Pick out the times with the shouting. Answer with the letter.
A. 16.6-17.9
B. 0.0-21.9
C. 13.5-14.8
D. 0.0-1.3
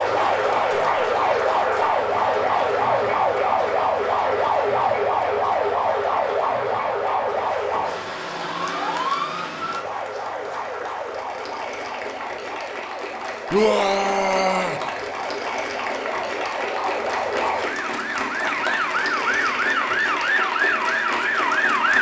C.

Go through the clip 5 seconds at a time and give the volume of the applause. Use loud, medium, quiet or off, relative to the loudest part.
loud, medium, medium, loud, loud.